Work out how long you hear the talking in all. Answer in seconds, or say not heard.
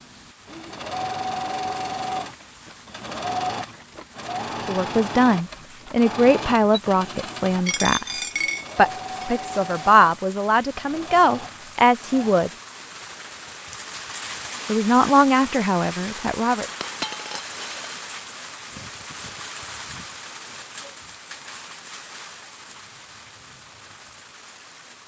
10 s.